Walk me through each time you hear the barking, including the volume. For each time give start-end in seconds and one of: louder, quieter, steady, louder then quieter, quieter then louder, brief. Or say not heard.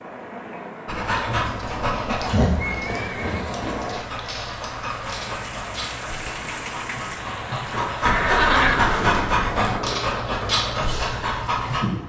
0.8-11.8 quieter then louder.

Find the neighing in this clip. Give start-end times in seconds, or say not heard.
2.5-3.5, 8.1-9.8.